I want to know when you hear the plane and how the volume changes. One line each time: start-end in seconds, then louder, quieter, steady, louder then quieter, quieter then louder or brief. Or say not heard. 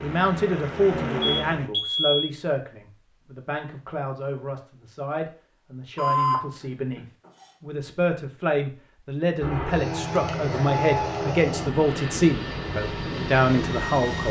0.0-1.7 brief
9.4-14.2 steady.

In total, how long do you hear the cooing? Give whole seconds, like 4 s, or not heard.
not heard.